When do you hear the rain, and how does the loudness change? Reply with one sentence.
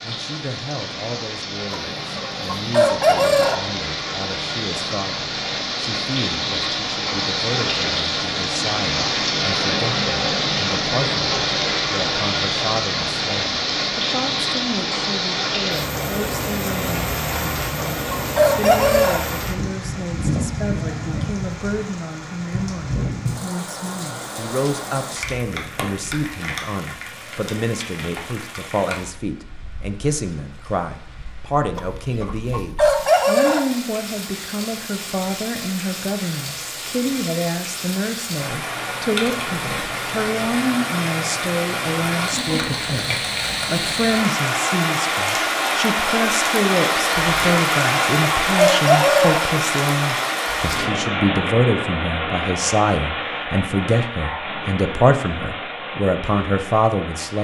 The rain can be heard from 0.0 to 57.3 s, getting quieter then louder.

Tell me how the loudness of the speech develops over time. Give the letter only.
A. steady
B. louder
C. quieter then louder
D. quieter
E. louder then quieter
B.